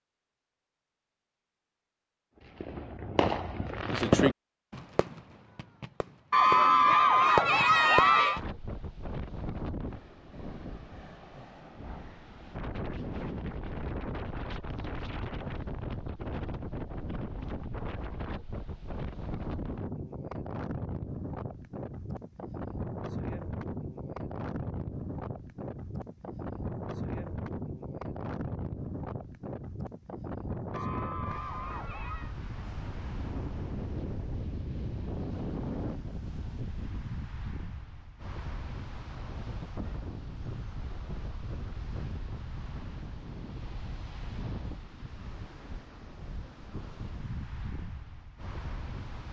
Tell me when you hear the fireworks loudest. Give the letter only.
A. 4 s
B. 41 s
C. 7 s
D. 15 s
A.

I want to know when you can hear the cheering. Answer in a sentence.
You can hear the cheering from 6.3 to 8.4 s and from 30.7 to 32.4 s.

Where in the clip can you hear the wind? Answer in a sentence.
You can hear the wind from 8.3 to 49.2 s.